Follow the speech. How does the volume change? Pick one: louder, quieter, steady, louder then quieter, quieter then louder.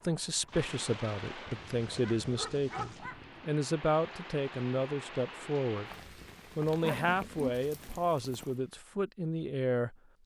steady.